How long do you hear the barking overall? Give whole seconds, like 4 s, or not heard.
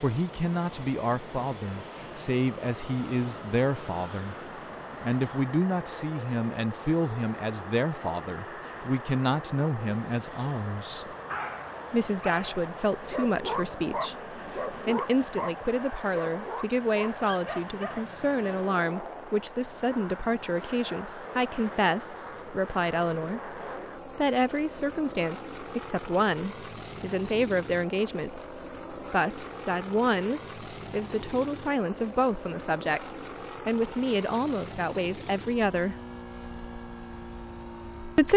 7 s.